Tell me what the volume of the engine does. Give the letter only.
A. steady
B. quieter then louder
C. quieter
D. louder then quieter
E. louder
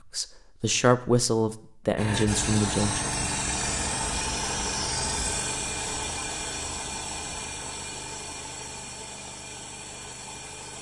C.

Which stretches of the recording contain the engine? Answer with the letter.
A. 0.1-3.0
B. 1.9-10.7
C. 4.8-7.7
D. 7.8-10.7
B.